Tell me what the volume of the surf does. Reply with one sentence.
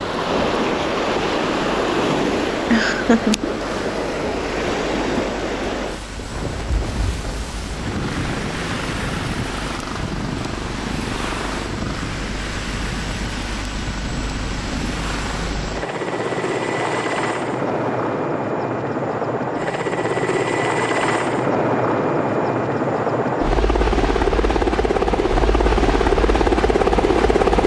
The loudness of the surf goes down.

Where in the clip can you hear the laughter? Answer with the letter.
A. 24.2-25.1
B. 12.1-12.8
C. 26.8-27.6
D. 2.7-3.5
D.